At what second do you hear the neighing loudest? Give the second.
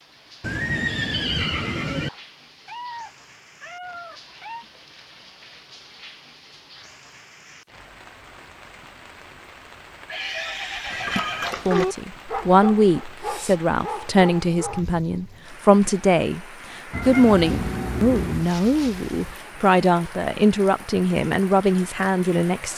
1 s.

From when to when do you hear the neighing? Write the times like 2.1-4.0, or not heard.
0.4-2.1, 10.1-11.6, 17.0-19.4.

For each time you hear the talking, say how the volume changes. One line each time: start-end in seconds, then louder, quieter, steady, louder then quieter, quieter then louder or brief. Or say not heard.
11.7-22.7 steady.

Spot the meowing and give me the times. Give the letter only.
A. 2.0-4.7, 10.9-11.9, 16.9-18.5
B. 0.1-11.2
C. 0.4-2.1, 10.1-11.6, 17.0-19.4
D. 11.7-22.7
A.